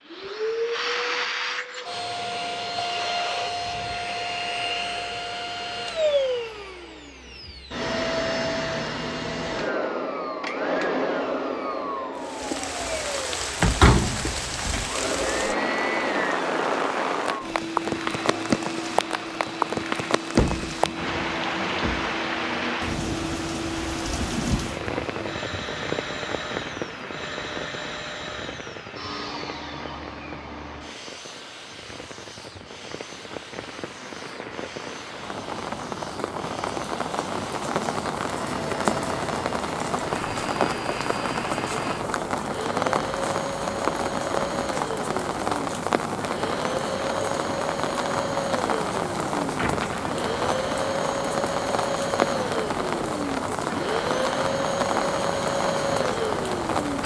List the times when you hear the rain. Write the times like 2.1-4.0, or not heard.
12.2-57.0.